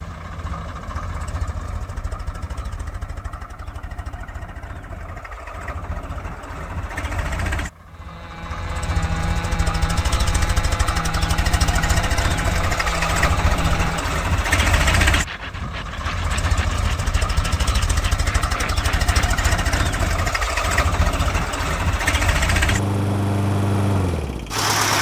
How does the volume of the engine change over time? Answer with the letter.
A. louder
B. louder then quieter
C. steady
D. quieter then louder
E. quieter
A.